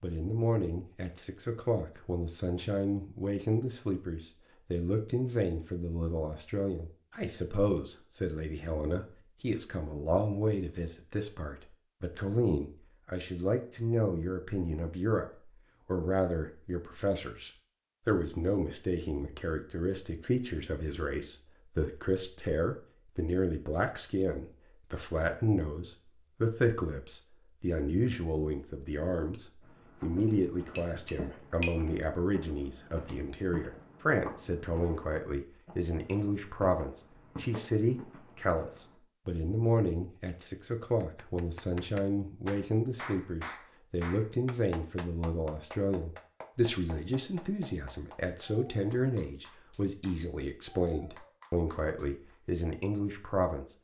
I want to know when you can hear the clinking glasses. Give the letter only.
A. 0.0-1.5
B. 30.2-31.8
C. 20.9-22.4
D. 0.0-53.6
B.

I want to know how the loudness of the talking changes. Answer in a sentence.
The volume of the talking stays about the same.